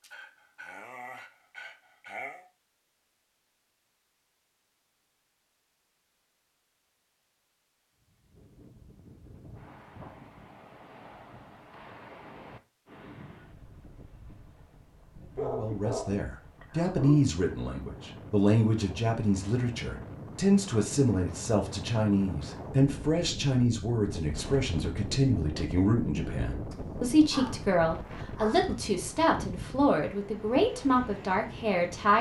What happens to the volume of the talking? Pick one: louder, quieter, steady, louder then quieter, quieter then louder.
steady.